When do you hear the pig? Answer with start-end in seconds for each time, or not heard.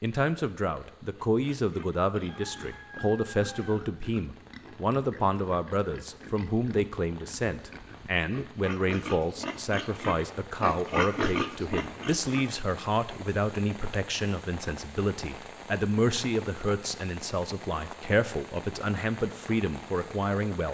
1.1-12.6.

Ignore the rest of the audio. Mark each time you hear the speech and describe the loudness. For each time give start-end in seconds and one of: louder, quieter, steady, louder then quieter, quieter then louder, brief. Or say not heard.
0.0-20.7 steady.